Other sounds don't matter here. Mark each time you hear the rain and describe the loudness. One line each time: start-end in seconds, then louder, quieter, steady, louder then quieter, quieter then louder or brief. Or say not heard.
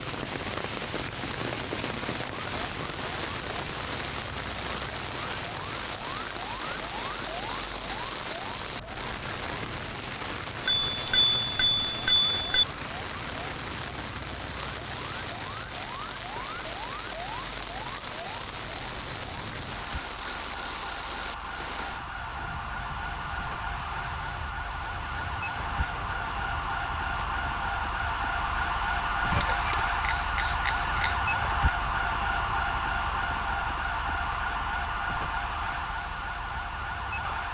0.0-37.4 quieter.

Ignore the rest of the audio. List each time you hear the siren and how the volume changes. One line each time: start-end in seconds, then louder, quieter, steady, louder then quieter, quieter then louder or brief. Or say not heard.
0.0-37.4 louder.